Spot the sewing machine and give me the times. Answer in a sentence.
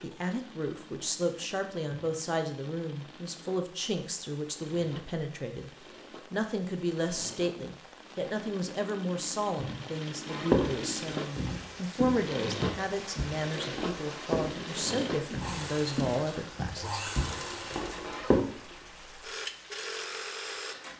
You can hear the sewing machine from 0.0 to 20.9 s.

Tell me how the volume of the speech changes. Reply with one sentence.
The volume of the speech stays about the same.